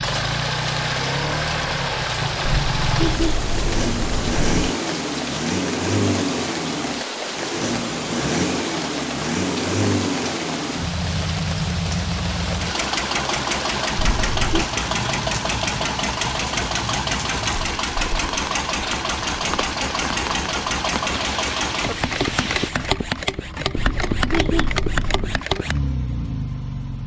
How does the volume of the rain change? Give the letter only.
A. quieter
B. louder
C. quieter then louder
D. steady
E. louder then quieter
D.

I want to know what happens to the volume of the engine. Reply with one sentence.
The loudness of the engine stays about the same.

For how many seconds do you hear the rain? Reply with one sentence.
You can hear the rain for 23 seconds altogether.